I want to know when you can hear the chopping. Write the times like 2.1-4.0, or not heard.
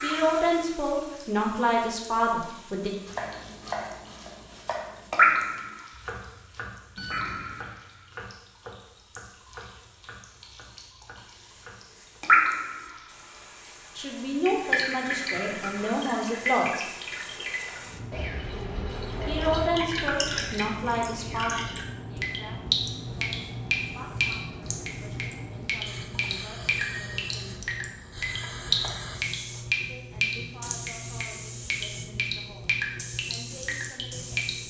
3.0-12.2.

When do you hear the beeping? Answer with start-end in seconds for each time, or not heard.
7.0-7.7.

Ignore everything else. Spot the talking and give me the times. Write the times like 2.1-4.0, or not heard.
0.0-2.9, 13.9-16.9, 19.2-27.6, 29.9-34.5.